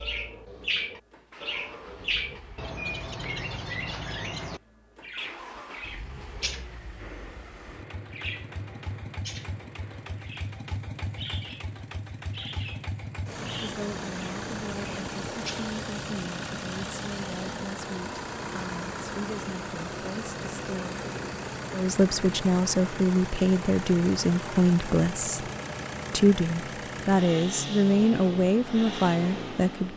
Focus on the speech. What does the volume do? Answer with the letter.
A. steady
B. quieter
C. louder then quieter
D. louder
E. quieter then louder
D.